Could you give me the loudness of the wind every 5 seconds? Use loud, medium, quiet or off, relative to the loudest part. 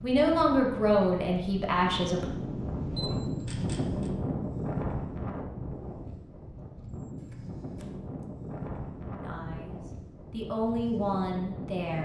loud, medium, medium.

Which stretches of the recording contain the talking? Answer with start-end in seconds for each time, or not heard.
0.0-2.3, 9.2-11.9.